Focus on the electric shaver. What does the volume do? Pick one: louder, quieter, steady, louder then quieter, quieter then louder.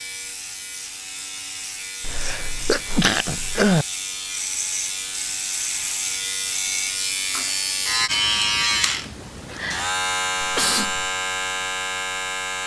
louder.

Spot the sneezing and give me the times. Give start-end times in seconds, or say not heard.
2.0-3.9, 10.4-11.1.